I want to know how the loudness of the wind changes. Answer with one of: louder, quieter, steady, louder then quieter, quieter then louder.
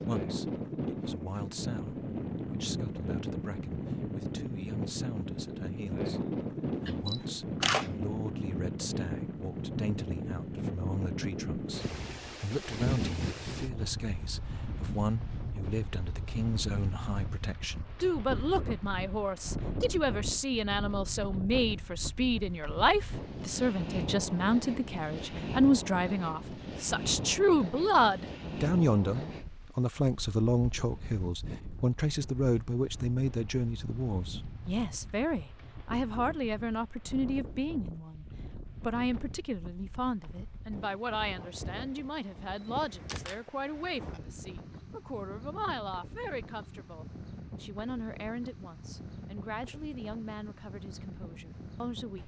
quieter.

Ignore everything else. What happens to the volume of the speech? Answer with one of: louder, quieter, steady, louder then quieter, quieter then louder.
louder then quieter.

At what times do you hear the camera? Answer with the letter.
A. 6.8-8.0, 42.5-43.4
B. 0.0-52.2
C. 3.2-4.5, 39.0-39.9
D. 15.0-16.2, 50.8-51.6
A.